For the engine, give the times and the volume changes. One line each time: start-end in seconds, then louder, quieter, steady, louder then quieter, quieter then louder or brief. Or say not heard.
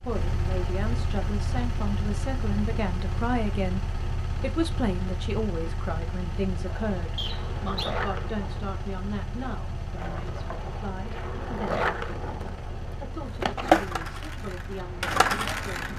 0.0-15.9 quieter.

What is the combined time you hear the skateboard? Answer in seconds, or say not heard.
9 s.